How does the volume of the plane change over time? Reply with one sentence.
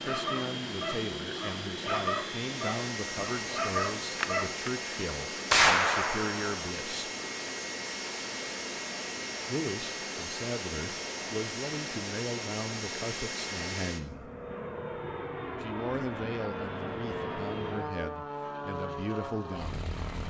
The volume of the plane stays about the same.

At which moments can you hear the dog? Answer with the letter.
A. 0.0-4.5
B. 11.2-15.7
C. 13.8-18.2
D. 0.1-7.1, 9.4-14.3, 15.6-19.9
A.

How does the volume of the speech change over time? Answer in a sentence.
The loudness of the speech stays about the same.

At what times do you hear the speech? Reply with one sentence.
You can hear the speech from 0.1 to 7.1 s, from 9.4 to 14.3 s and from 15.6 to 19.9 s.